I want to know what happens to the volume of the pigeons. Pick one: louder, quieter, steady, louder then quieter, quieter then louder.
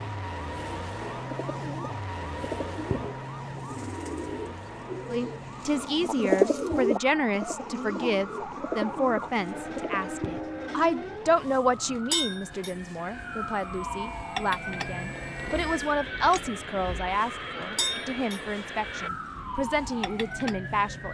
louder then quieter.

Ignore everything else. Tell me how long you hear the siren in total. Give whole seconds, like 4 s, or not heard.
21 s.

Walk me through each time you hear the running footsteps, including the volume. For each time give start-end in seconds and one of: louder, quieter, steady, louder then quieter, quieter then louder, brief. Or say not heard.
not heard.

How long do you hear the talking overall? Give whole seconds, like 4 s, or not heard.
16 s.